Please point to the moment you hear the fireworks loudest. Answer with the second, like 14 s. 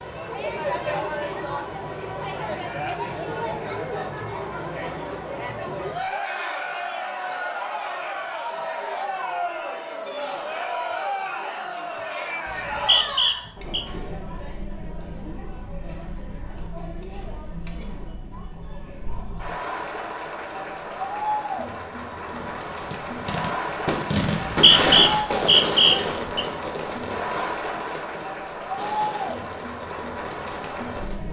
25 s.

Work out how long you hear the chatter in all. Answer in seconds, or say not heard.
31 s.